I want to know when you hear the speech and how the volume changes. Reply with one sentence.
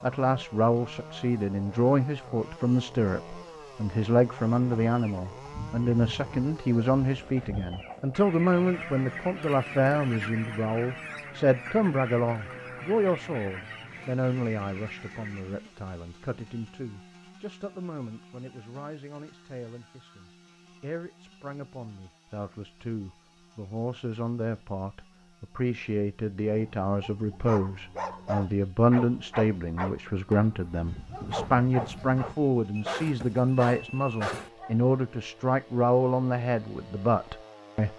You can hear the speech from 0.0 to 37.9 s, getting quieter then louder.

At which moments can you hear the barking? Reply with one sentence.
The barking can be heard from 26.4 to 34.9 s.